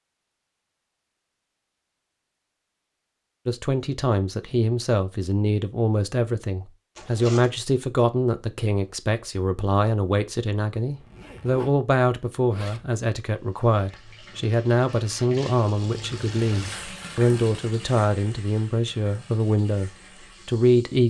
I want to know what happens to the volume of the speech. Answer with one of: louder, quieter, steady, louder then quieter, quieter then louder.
steady.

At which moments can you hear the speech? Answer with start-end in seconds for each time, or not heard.
3.5-21.0.